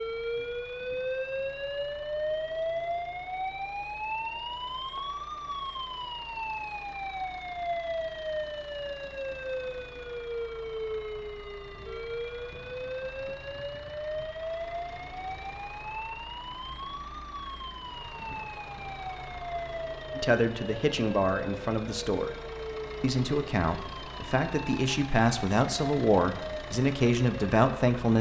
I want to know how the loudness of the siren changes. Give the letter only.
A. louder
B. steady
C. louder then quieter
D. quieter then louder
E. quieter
E.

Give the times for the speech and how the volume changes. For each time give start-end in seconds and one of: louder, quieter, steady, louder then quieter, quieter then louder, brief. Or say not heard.
20.1-22.3 brief
23.0-28.1 louder.